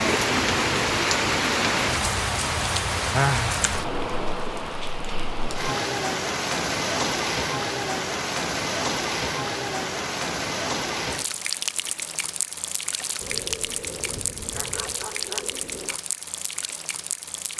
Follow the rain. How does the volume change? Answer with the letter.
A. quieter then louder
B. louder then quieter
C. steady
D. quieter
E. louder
D.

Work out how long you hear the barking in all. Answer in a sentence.
You can hear the barking for 3 seconds altogether.